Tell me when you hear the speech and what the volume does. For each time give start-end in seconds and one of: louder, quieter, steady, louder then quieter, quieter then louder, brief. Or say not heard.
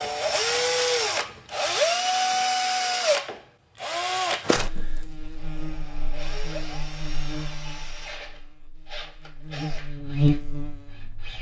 not heard.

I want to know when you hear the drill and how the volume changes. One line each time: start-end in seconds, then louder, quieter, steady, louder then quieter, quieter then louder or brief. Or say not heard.
0.0-11.3 quieter.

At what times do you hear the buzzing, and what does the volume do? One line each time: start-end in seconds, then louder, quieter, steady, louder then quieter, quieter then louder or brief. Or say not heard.
4.4-11.3 louder.